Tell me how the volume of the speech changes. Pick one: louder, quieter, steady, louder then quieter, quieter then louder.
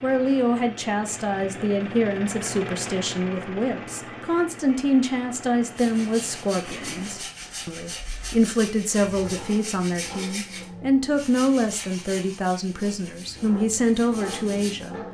steady.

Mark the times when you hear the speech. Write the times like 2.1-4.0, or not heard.
0.0-14.9.